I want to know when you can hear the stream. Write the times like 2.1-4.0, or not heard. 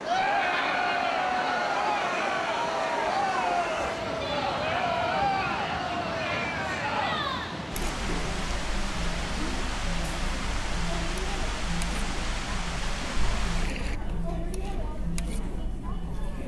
0.0-14.0.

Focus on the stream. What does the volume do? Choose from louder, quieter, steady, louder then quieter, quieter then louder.
steady.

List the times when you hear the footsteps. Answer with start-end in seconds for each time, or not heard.
not heard.